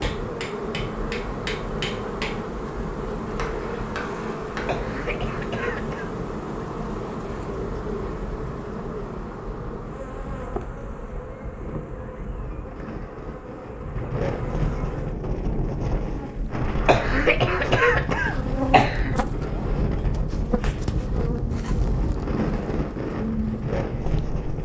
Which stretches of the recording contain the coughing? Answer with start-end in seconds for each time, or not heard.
4.7-6.0, 16.9-19.1.